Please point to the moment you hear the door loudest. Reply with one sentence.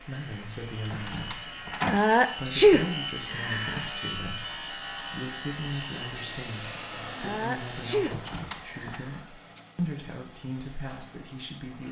The volume of the door peaks at 2 seconds.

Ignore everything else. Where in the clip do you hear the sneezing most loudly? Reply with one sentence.
The volume of the sneezing peaks at 3 seconds.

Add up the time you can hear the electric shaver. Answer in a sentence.
You can hear the electric shaver for 8 seconds altogether.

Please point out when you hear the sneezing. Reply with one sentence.
The sneezing can be heard from 1.9 to 3.9 s and from 7.2 to 9.6 s.